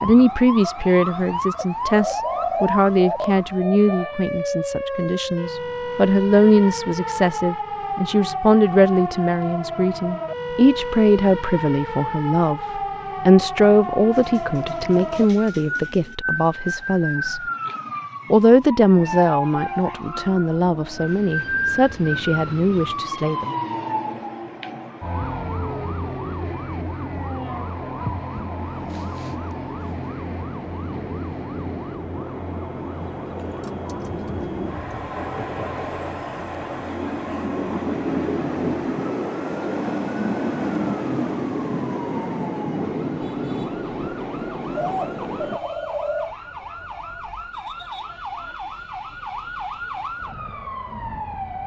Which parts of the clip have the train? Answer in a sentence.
You can hear the train from 18.9 to 45.6 s.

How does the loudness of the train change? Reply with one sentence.
The volume of the train goes up.